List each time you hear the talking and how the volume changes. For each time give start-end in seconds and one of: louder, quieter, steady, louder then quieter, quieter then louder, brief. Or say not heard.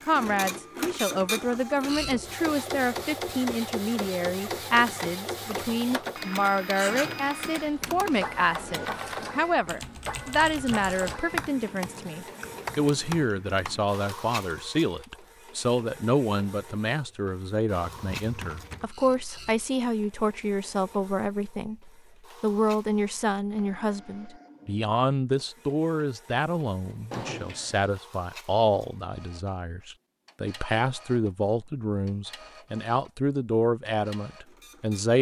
0.1-35.1 steady.